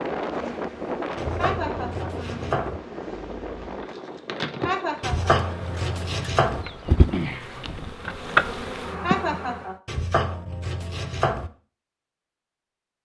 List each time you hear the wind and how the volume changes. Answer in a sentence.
The wind can be heard from 0.0 to 7.0 s, getting quieter.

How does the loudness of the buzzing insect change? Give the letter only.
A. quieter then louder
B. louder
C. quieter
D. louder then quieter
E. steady
B.